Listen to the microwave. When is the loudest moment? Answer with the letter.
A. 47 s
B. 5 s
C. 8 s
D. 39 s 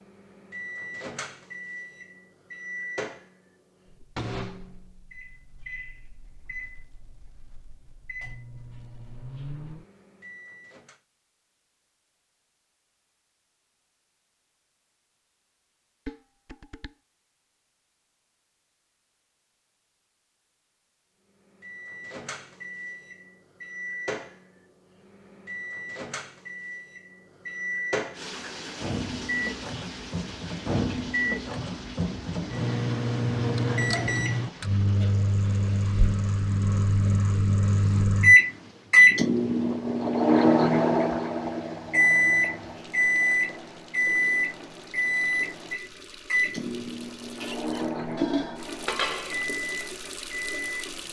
D.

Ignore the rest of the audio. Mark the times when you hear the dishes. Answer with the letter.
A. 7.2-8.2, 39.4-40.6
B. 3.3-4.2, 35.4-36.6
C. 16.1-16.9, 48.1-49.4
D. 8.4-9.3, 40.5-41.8
C.